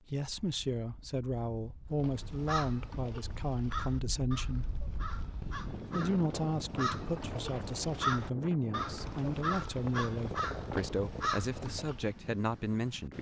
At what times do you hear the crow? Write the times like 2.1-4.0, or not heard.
2.0-12.2.